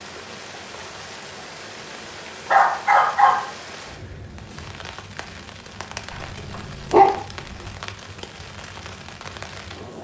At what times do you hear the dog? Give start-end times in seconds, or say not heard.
2.5-3.5, 6.1-7.7.